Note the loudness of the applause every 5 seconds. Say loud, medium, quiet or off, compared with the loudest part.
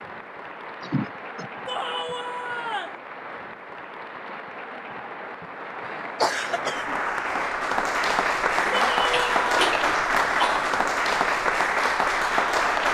quiet, loud, loud.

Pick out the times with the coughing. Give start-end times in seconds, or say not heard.
0.8-1.5, 6.2-7.0, 8.7-10.8.